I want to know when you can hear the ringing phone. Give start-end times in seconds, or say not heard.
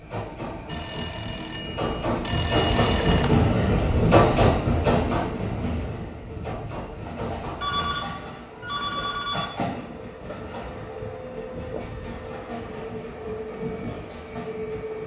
0.7-3.4, 7.6-9.5.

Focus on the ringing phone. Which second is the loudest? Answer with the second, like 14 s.
3 s.